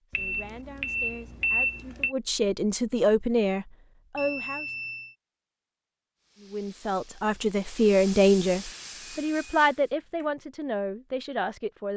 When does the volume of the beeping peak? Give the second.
2 s.